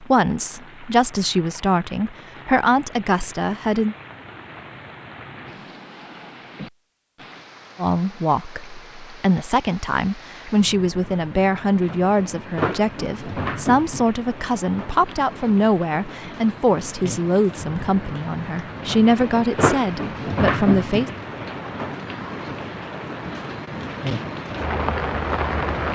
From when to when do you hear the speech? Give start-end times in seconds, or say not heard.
0.0-4.0, 7.8-21.1.